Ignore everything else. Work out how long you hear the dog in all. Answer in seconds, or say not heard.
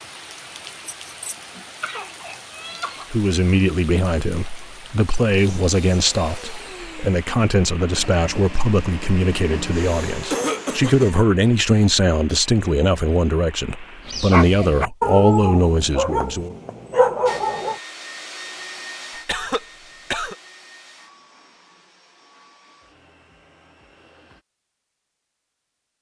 4 s.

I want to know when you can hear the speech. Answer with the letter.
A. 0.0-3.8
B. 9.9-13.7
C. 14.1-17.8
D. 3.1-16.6
D.